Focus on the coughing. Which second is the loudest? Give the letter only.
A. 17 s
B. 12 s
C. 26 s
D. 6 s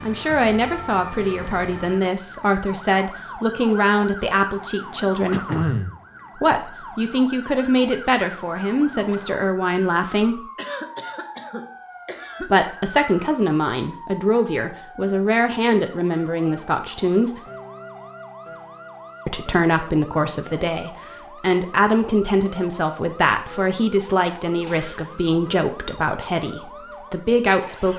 D.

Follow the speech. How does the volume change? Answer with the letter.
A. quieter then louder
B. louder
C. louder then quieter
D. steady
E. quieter
D.